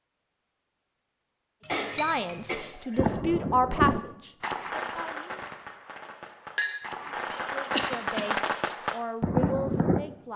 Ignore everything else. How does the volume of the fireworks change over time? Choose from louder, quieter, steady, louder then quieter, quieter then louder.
quieter then louder.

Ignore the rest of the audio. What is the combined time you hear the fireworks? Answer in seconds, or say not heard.
7 s.